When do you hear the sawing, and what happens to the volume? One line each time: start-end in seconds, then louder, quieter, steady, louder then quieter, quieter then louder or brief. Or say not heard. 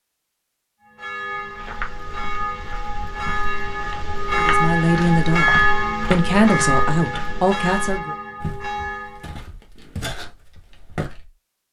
not heard.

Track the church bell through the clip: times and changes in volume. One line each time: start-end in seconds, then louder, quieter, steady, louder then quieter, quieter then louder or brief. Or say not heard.
0.8-9.4 louder then quieter.